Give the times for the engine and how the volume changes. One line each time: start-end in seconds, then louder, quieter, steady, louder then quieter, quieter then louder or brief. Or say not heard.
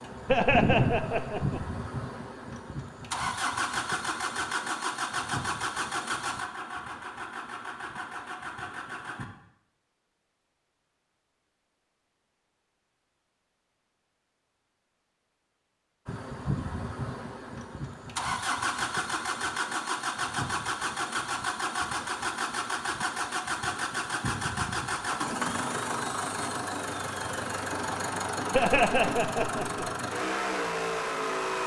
0.0-9.2 quieter
16.1-31.6 steady.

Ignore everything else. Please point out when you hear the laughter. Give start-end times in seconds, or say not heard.
0.2-1.6, 28.5-29.9.